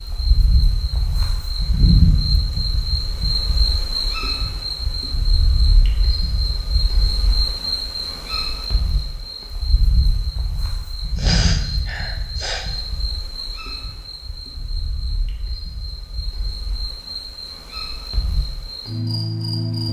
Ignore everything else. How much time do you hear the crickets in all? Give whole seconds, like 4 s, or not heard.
20 s.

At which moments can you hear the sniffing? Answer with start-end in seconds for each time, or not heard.
11.2-12.7.